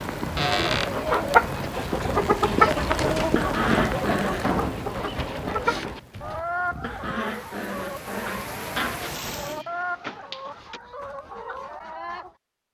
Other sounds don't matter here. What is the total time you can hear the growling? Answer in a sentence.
The growling can be heard for 3 seconds in total.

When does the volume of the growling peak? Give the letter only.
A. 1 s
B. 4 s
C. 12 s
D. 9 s
B.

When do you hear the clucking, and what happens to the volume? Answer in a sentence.
You can hear the clucking from 0.3 to 12.3 s, getting quieter.